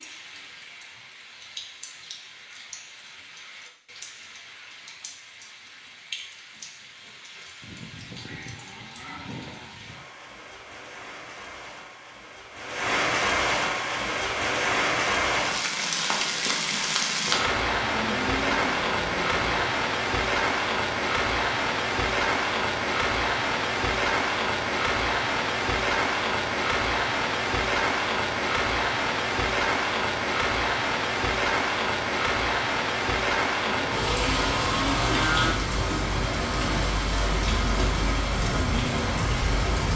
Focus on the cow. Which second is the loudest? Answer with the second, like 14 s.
35 s.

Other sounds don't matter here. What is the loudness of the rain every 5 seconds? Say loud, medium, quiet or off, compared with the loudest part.
quiet, quiet, loud, loud, loud, loud, loud, loud.